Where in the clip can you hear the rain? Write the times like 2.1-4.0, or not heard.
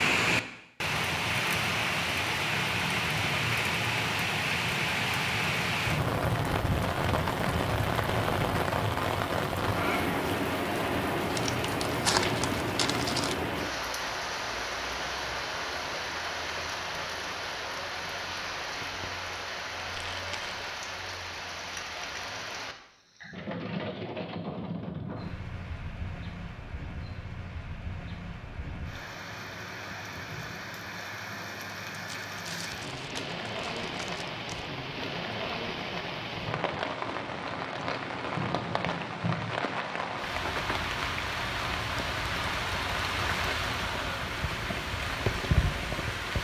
0.0-46.3.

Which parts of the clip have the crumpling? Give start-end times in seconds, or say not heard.
11.3-13.3, 19.9-20.6, 32.0-34.6.